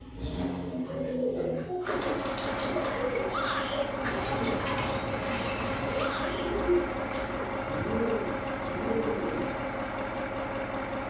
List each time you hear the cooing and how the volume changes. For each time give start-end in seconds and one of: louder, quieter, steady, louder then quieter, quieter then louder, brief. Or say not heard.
0.1-9.6 steady.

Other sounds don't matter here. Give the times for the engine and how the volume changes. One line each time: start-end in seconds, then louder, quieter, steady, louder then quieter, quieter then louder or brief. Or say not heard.
0.0-11.0 steady.